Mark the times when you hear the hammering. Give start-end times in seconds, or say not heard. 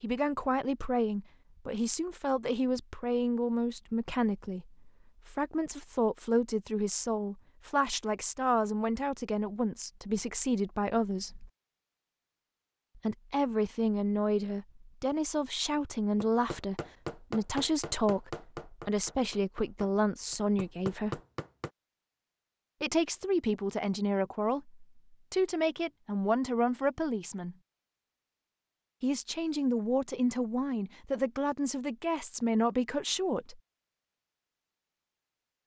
16.2-21.7.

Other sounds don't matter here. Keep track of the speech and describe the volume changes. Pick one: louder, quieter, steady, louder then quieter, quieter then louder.
steady.